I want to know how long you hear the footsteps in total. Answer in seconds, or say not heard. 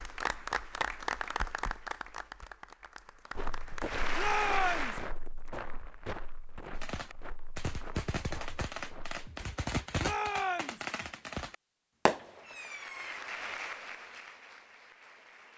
6 s.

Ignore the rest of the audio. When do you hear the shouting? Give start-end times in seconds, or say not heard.
4.2-5.0, 10.0-10.8.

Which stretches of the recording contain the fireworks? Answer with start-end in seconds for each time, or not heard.
6.8-13.2.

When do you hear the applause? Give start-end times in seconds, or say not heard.
0.0-5.1, 12.3-15.5.